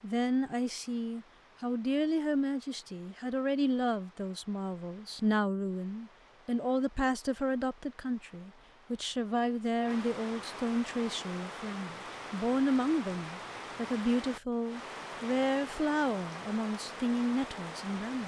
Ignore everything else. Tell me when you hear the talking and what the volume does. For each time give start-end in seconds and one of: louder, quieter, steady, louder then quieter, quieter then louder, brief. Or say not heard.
0.0-18.2 steady.